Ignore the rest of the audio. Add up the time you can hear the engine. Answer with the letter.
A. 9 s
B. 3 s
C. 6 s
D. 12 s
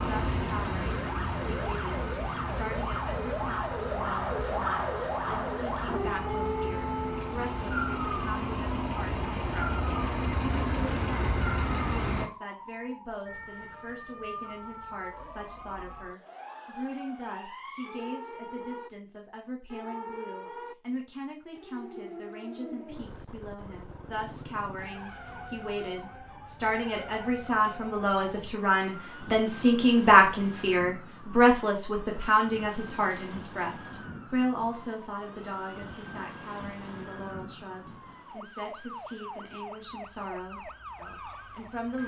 D.